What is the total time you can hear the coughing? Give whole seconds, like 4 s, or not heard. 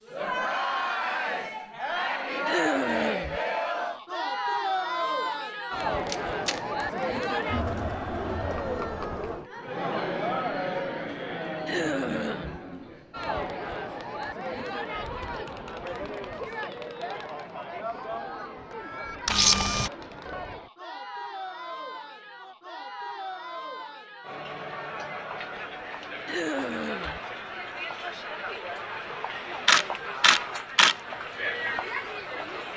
3 s.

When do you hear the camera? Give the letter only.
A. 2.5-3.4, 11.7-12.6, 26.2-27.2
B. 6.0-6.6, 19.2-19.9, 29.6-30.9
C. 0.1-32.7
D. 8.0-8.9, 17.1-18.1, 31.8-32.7
B.